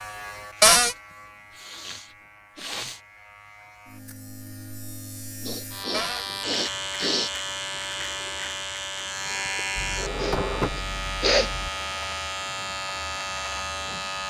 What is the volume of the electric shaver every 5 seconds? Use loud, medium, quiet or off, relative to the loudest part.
quiet, loud, loud.